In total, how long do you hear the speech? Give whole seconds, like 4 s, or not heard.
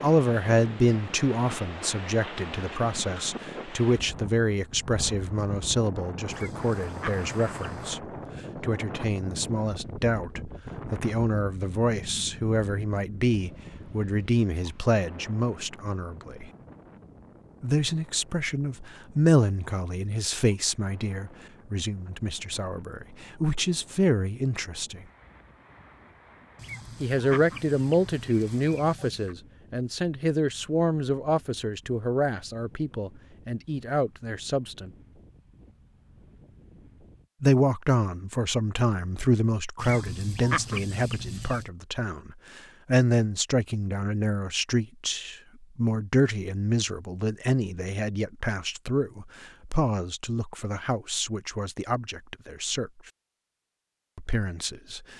48 s.